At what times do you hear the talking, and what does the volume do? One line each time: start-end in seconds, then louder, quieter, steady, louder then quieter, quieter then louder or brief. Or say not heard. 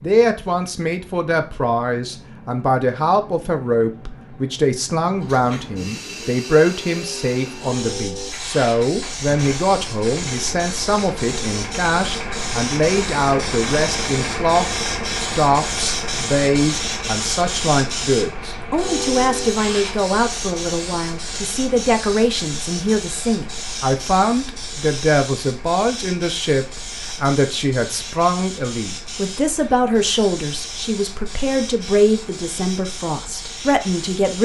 0.0-34.3 steady.